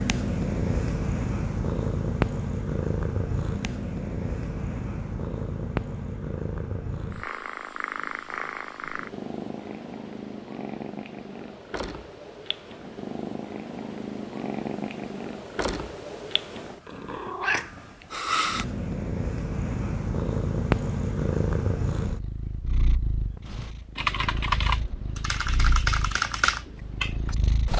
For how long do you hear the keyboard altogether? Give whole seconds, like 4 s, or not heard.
4 s.